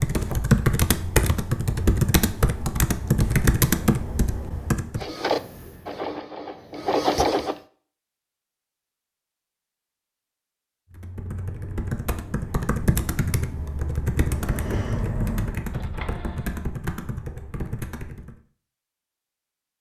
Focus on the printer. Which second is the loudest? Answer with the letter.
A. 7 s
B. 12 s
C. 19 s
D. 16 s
A.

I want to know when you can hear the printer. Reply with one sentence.
You can hear the printer from 5.0 to 7.5 s and from 14.2 to 16.6 s.